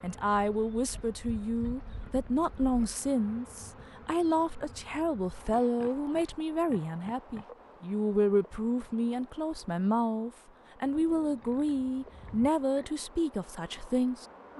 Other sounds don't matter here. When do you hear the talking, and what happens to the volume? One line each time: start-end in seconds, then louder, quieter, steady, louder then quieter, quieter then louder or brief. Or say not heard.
0.0-14.2 steady.